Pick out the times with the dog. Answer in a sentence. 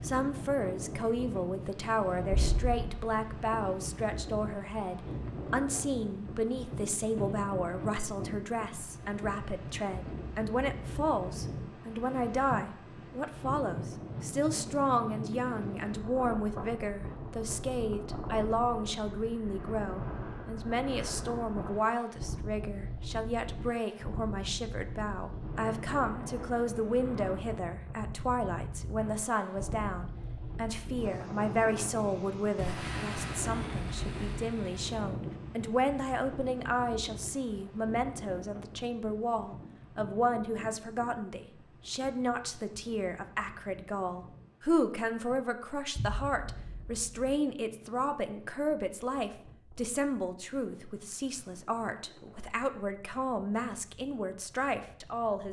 You can't hear the dog here.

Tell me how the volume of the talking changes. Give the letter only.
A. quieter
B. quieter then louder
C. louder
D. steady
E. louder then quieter
D.